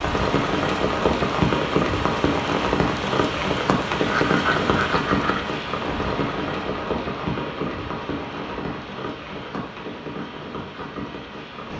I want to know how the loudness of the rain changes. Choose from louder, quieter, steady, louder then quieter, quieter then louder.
quieter.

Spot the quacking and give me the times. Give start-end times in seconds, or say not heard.
3.9-5.4.